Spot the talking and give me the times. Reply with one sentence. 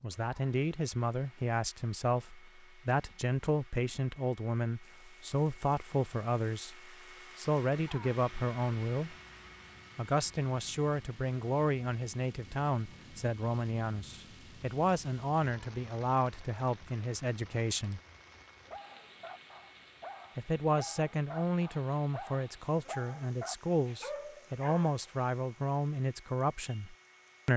The talking can be heard from 0.0 to 9.2 s, from 9.9 to 18.0 s and from 20.4 to 27.5 s.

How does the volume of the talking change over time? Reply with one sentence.
The loudness of the talking stays about the same.